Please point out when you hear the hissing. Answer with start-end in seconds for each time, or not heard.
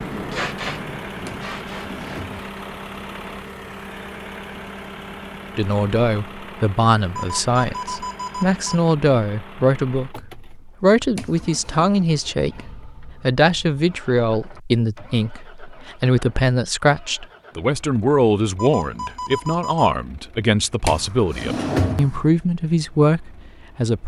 0.0-2.3.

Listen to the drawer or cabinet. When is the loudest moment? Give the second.
22 s.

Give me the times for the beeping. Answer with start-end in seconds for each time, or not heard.
7.2-8.7, 18.6-19.9.